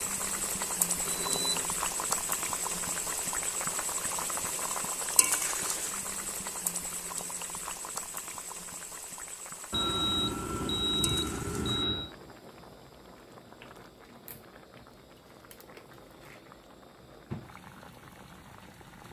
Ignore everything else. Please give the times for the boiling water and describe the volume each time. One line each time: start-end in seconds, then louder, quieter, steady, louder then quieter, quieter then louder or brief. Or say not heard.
0.0-19.0 quieter.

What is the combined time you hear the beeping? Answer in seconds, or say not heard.
3 s.